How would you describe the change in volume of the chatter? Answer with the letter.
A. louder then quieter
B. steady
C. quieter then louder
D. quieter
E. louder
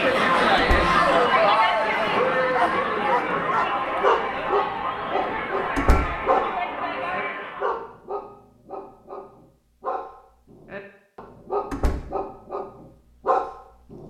D.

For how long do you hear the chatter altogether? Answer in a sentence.
The chatter can be heard for 8 seconds in total.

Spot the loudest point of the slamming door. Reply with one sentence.
The loudest moment of the slamming door is at 6 seconds.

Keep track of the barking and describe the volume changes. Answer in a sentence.
The volume of the barking goes down, then up.